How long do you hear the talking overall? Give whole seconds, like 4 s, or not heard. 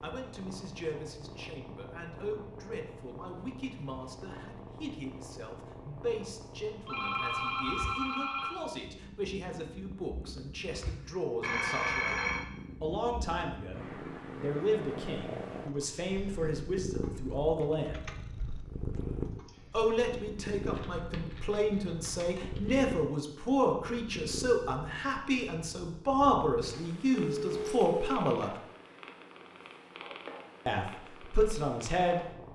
28 s.